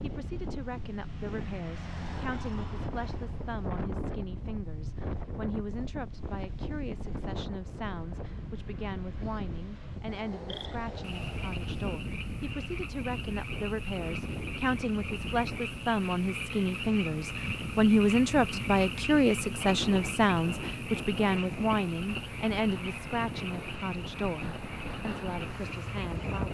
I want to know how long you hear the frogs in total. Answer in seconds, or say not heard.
16 s.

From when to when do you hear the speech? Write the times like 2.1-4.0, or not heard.
0.0-26.4.